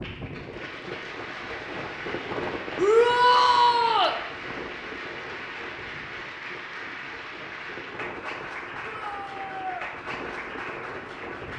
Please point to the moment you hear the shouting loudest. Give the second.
3 s.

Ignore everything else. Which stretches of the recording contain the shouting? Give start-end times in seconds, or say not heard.
2.8-4.2, 8.8-9.9.